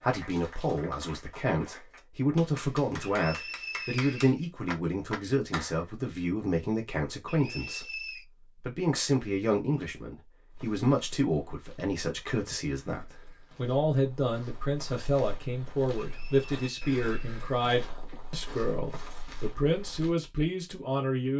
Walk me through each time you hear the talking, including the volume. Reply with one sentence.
You can hear the talking from 0.0 to 21.3 s, at a steady volume.